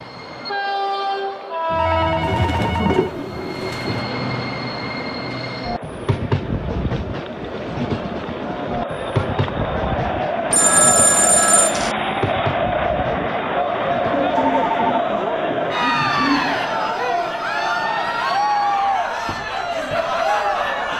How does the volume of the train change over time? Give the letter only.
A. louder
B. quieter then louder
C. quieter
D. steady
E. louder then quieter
C.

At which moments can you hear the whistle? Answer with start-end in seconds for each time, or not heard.
not heard.